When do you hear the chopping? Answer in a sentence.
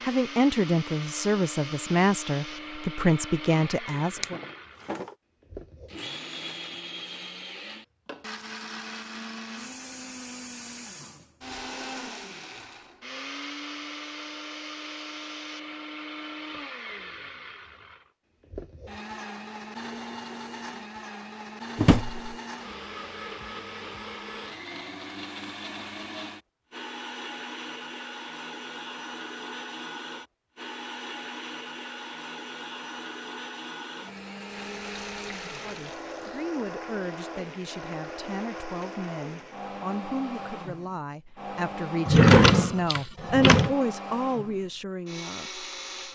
You can't hear the chopping here.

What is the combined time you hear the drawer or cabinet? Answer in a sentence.
You can hear the drawer or cabinet for 3 seconds altogether.